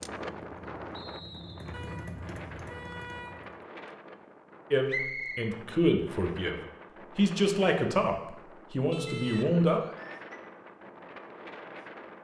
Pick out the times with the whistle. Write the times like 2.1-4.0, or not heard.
0.9-1.8, 4.8-5.5, 9.2-10.4.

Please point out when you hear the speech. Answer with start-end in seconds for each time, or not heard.
4.7-9.8.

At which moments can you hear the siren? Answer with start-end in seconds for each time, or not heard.
not heard.